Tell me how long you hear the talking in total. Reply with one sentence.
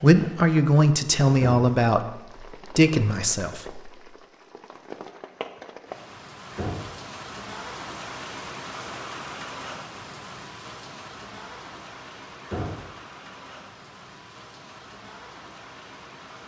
The talking can be heard for 4 seconds in total.